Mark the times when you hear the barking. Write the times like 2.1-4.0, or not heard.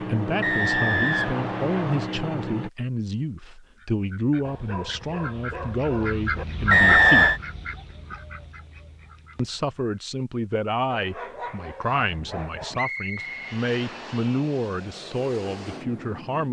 4.4-6.5, 10.9-12.8.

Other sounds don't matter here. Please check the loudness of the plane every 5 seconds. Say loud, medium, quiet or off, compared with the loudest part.
loud, off, medium, medium.